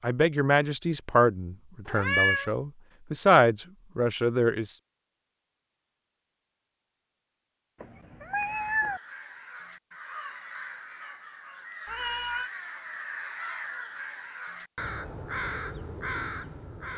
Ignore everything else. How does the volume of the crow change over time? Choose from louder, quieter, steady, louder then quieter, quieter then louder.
louder.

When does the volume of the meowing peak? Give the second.
2 s.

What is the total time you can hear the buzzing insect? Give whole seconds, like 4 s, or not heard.
not heard.